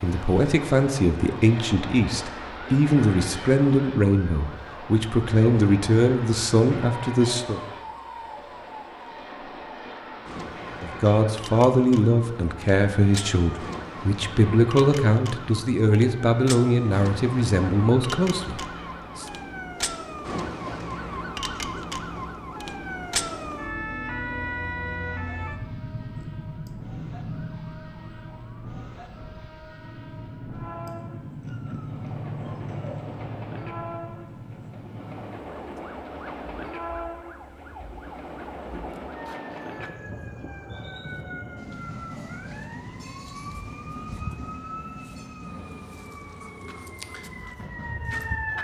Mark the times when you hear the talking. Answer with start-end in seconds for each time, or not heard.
0.0-7.6, 10.8-19.2.